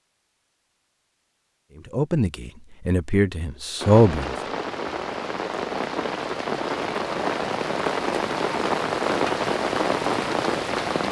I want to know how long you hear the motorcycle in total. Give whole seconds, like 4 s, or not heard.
not heard.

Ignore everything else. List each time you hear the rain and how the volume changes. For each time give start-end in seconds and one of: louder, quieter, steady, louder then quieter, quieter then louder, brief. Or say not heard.
3.8-11.0 louder.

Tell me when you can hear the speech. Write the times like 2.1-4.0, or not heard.
1.9-4.3.